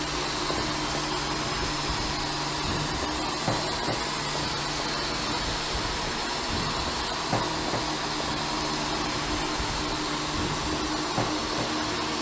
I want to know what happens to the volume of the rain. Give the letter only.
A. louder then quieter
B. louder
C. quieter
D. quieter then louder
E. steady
E.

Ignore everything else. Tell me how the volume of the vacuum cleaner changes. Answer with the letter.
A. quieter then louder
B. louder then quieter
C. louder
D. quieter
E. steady
E.